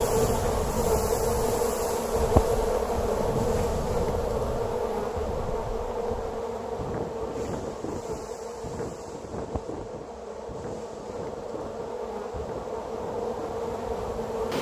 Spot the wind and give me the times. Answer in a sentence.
The wind can be heard from 0.0 to 14.4 s.